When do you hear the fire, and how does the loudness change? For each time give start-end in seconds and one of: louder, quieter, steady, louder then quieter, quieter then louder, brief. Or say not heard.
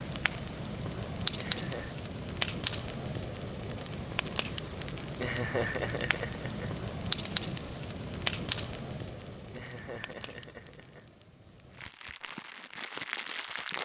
0.0-13.7 quieter.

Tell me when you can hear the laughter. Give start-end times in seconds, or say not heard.
1.4-1.9, 5.2-6.8, 9.5-11.1.